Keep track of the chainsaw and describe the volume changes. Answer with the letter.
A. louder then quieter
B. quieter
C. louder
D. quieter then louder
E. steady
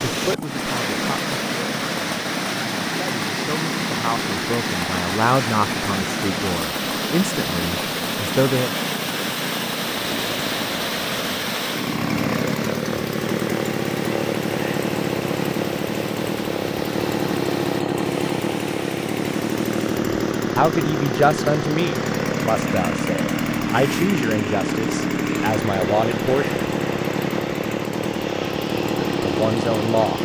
C.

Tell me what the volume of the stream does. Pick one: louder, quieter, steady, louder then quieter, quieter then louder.
quieter.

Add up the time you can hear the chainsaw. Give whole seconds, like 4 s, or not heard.
30 s.